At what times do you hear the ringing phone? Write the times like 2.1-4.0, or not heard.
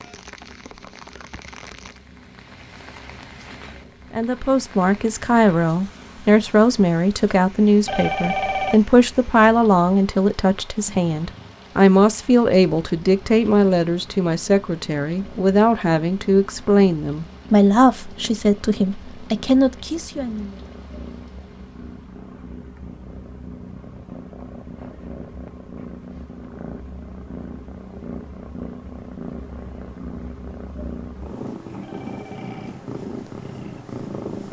7.8-8.8, 31.8-32.7.